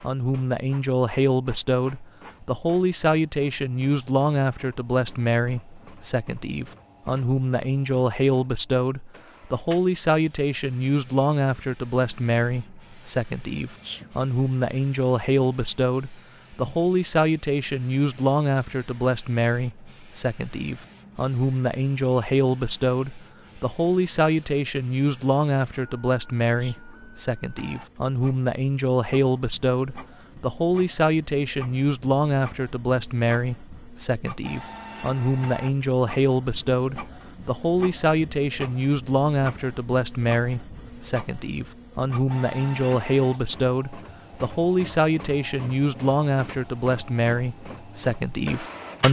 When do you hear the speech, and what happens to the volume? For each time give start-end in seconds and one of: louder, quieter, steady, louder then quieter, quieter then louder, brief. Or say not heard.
0.0-49.0 steady.